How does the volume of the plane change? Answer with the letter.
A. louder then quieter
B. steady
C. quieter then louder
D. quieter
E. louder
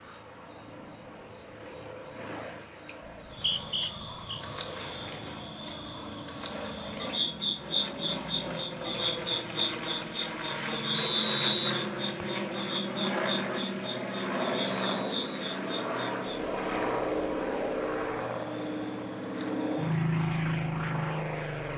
E.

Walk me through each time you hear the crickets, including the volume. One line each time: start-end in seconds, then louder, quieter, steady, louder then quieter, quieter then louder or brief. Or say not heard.
0.0-21.7 quieter.